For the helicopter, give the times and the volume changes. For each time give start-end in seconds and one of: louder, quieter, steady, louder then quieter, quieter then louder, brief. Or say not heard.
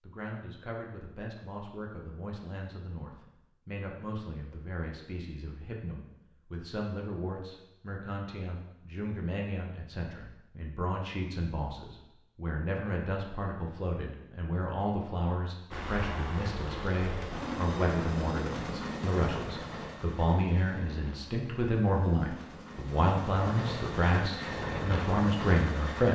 15.7-26.1 quieter then louder.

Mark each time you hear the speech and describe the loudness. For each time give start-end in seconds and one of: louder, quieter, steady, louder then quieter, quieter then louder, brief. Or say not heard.
0.0-26.1 louder.